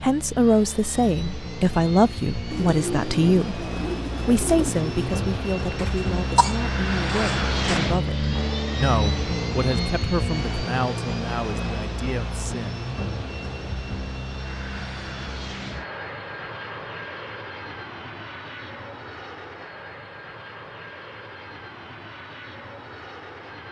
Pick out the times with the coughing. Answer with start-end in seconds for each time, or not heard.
5.8-7.8.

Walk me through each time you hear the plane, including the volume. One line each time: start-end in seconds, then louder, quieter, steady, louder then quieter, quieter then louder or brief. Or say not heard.
0.0-23.6 louder then quieter.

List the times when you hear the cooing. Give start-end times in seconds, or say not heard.
2.5-5.2.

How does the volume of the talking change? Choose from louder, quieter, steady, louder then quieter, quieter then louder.
quieter.